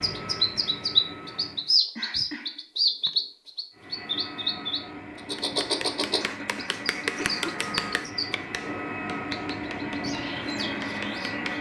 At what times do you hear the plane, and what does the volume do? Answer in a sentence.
The plane can be heard briefly from 0.0 to 1.8 s; and from 3.7 to 11.5 s, getting louder.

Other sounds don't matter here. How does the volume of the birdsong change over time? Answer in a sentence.
The loudness of the birdsong goes down.